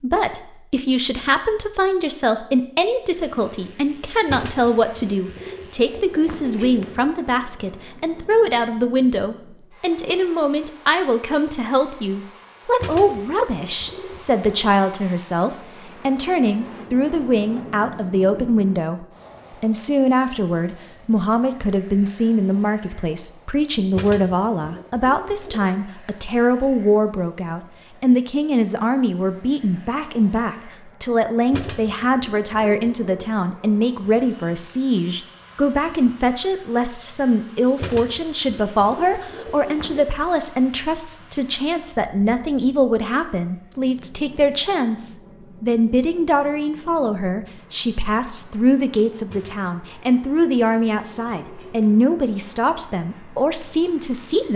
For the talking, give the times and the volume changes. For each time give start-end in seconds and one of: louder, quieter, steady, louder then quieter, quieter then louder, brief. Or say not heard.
0.0-54.5 steady.